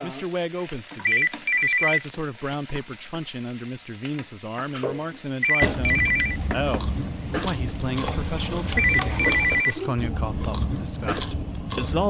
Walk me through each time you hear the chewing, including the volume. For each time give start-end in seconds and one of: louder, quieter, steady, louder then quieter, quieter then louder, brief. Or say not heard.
4.7-12.0 steady.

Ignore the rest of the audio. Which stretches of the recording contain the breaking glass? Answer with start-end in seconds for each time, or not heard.
not heard.